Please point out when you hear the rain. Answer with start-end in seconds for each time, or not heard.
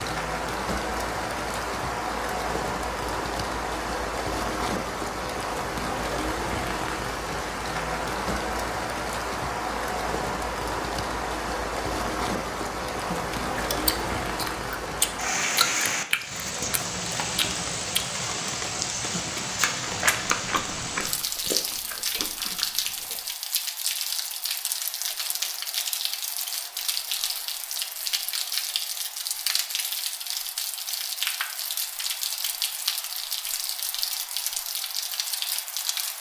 0.0-36.1.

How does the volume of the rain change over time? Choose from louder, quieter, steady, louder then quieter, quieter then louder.
steady.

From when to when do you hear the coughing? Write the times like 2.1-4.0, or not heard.
not heard.